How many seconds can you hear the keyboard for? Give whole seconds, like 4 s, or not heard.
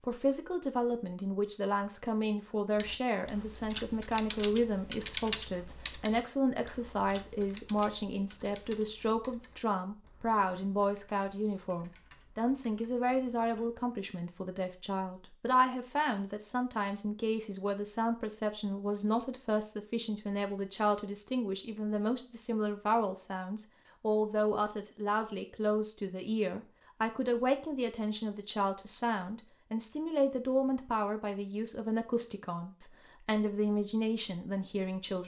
11 s.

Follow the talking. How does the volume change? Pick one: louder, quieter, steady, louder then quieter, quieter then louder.
steady.